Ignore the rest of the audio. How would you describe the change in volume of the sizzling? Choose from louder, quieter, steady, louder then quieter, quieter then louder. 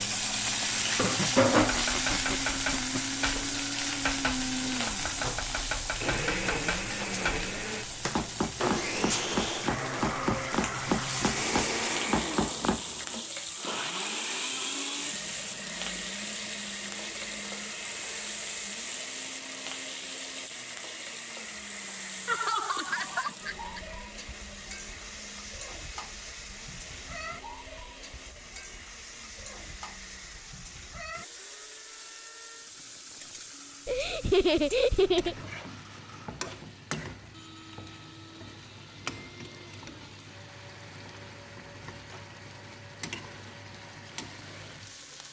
quieter.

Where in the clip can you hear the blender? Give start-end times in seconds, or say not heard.
0.0-45.2.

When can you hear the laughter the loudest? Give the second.
34 s.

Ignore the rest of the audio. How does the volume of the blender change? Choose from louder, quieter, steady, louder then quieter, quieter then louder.
quieter.